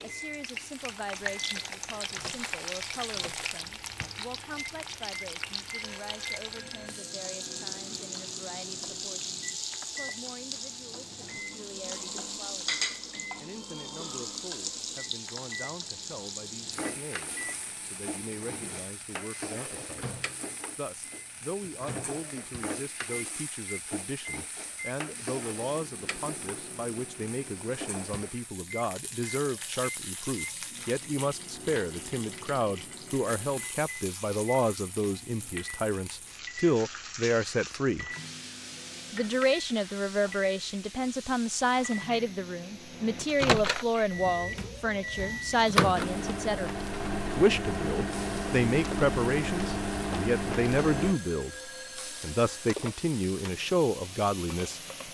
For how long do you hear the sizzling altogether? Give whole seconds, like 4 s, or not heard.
55 s.